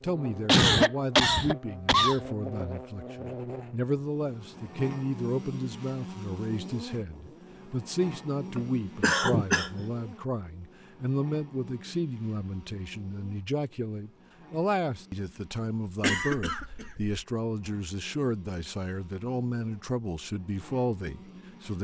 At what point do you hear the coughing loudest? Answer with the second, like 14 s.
1 s.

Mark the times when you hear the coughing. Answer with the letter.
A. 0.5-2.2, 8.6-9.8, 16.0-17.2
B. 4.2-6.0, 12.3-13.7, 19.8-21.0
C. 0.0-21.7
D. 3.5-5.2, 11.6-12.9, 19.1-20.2
A.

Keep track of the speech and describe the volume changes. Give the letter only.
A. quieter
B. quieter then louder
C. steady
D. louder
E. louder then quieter
C.